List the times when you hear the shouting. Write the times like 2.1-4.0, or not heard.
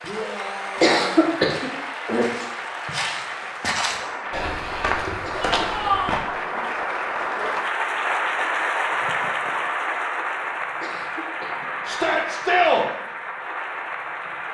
0.1-1.4, 5.3-6.2, 11.8-12.8.